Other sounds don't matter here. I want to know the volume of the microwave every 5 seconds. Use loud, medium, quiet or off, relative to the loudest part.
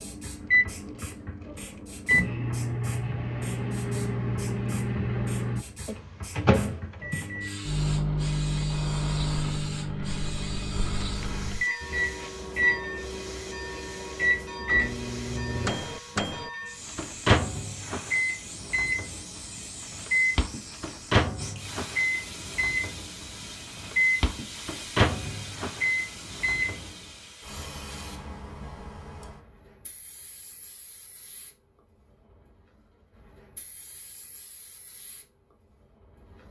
loud, loud, loud, loud, loud, loud, off, off.